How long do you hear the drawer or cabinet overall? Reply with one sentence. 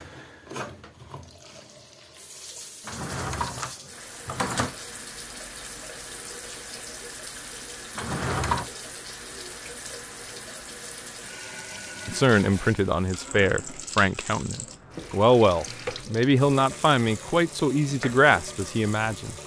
You can hear the drawer or cabinet for 3 seconds altogether.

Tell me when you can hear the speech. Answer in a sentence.
The speech can be heard from 12.1 to 19.4 s.